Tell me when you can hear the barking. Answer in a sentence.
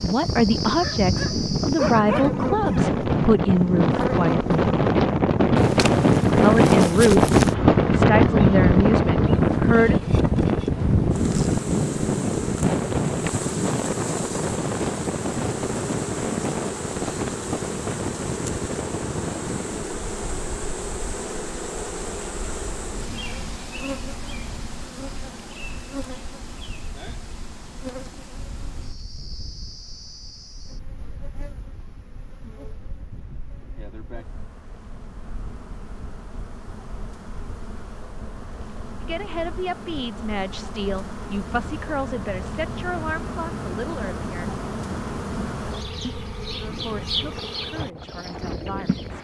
The barking can be heard from 0.8 to 2.9 s.